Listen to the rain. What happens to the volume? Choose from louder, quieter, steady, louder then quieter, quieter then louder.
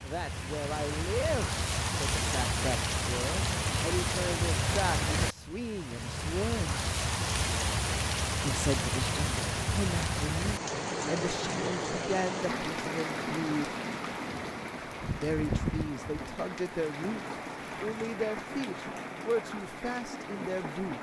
quieter.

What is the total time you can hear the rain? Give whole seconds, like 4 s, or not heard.
21 s.